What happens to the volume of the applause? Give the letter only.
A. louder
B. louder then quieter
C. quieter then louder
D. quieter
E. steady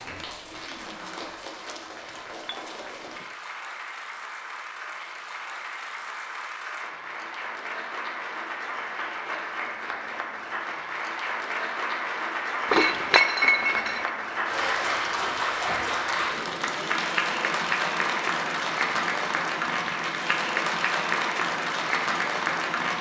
A.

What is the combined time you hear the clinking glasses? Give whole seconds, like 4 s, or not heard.
2 s.